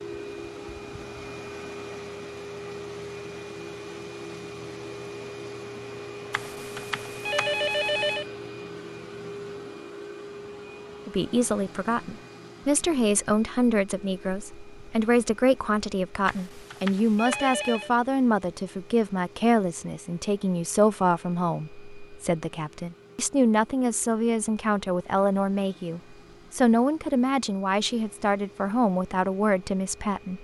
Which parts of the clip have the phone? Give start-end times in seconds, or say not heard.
6.3-8.2, 16.2-17.9.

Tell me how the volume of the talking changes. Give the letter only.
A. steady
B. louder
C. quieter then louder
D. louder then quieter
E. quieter
A.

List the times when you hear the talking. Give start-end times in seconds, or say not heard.
11.1-30.3.